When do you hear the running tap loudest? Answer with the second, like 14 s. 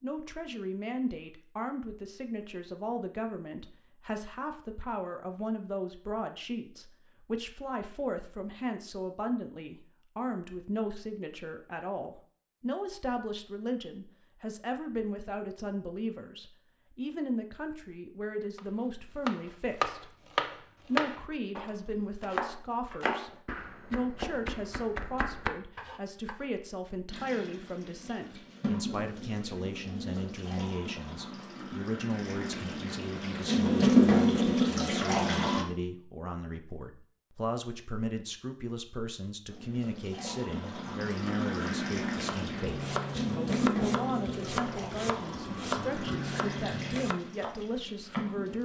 34 s.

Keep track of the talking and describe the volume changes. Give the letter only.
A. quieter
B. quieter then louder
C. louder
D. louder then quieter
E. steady
E.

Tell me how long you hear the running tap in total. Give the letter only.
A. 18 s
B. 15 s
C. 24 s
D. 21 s
A.